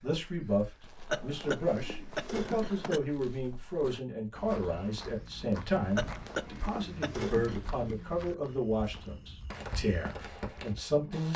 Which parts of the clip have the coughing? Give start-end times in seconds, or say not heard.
1.1-3.0, 6.0-7.6.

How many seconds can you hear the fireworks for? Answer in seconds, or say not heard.
2 s.